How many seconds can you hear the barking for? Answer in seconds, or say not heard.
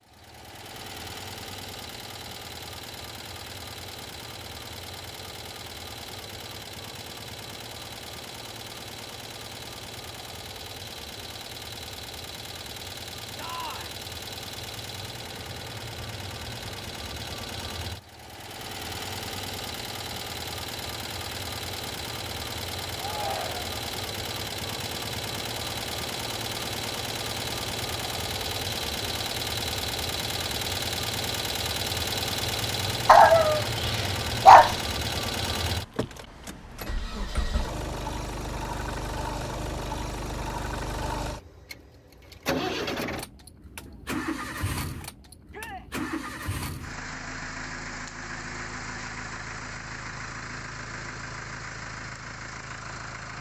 2 s.